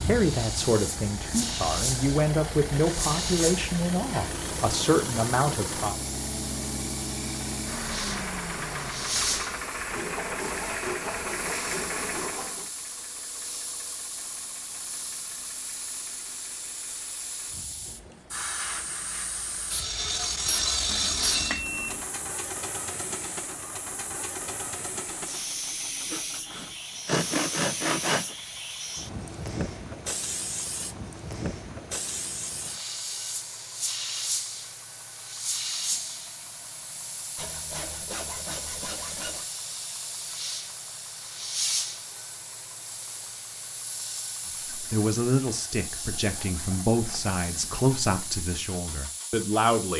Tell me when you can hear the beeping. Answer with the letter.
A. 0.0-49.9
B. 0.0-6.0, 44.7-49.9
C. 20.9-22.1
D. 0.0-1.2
C.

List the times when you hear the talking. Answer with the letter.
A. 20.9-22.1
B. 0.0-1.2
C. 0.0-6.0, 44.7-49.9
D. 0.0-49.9
C.